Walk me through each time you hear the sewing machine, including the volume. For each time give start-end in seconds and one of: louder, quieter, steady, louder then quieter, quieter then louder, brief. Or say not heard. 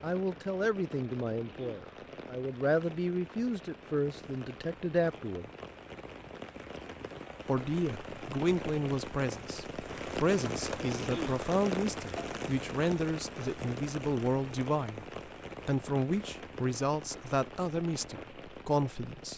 not heard.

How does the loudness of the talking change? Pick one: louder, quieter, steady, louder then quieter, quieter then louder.
steady.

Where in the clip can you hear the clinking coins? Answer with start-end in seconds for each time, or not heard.
not heard.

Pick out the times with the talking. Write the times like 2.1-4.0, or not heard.
0.0-5.5, 7.5-15.1, 15.7-19.3.